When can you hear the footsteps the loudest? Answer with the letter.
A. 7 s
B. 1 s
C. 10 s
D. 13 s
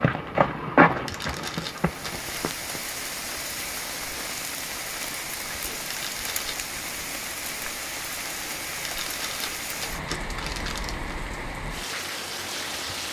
B.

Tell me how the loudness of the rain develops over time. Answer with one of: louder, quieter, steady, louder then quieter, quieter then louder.
steady.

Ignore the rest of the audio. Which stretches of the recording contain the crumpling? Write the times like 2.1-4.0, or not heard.
1.1-2.3, 5.8-6.6, 8.8-11.2.